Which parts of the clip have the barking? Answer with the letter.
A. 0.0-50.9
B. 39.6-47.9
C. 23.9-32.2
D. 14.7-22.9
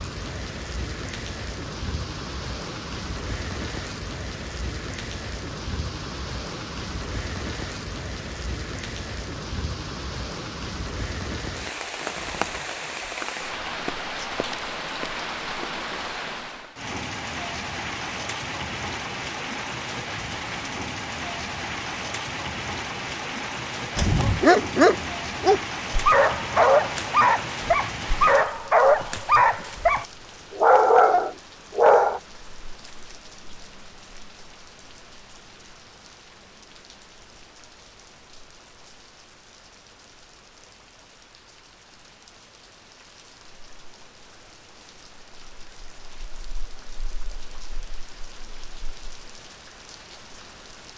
C.